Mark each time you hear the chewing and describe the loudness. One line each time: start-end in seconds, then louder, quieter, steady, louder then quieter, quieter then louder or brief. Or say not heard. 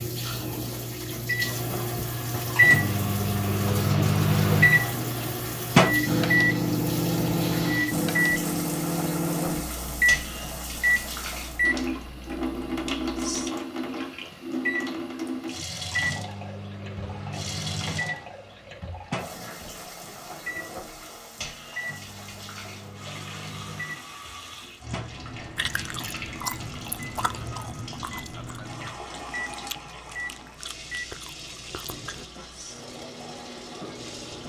25.6-32.2 quieter.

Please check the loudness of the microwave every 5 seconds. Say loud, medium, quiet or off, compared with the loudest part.
loud, loud, medium, quiet, quiet, quiet, quiet.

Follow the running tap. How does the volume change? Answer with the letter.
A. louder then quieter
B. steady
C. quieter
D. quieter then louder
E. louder
C.